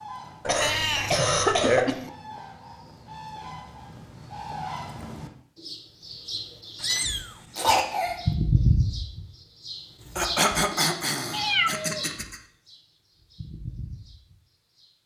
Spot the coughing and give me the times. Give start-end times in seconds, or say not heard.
0.5-1.9, 7.5-8.2, 10.2-12.4.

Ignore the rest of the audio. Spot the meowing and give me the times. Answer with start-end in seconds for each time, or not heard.
0.5-2.1, 6.8-8.0, 11.3-12.1.